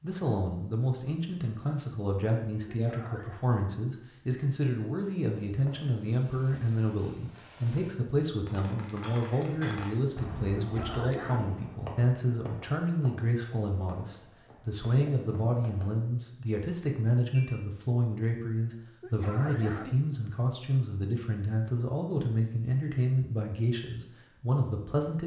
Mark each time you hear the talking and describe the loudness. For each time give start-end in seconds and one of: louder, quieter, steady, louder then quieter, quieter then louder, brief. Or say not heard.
0.0-25.2 steady.